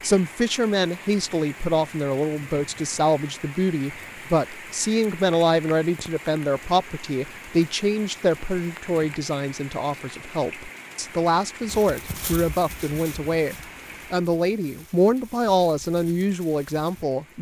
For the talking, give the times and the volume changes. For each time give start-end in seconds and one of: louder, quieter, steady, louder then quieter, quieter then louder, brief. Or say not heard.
0.0-17.3 steady.